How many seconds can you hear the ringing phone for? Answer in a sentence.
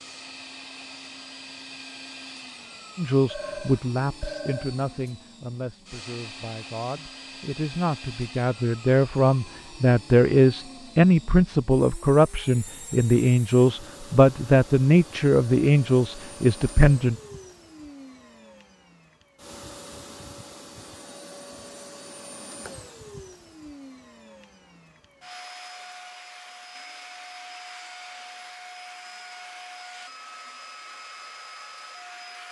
You can hear the ringing phone for 2 seconds altogether.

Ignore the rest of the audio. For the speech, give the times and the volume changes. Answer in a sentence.
The speech can be heard from 3.0 to 17.1 s, getting louder.